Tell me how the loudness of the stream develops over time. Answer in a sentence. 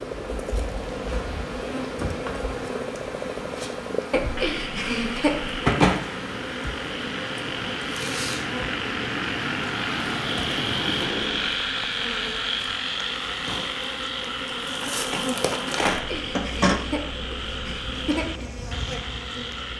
The loudness of the stream goes up.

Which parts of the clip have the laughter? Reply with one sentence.
The laughter can be heard from 4.1 to 5.6 s and from 15.9 to 18.2 s.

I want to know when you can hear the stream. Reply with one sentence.
You can hear the stream from 0.0 to 11.7 s.